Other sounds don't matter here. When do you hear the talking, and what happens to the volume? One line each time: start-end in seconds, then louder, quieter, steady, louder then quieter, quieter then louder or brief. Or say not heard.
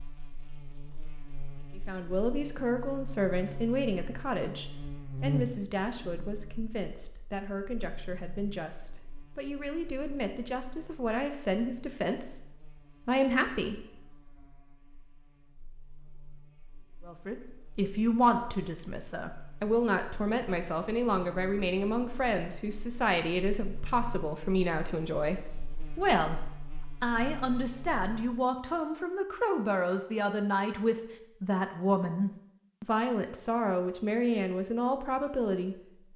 1.8-13.8 quieter then louder
17.1-26.4 steady
27.0-36.1 steady.